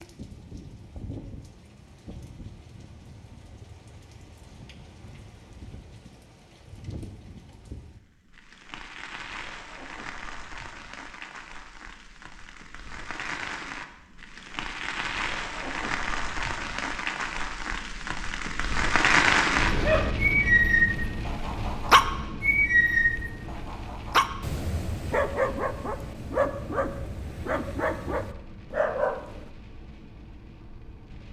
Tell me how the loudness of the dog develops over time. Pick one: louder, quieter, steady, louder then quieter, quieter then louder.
quieter.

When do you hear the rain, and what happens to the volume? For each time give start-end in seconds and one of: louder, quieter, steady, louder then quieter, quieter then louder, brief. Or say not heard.
0.0-31.2 louder then quieter.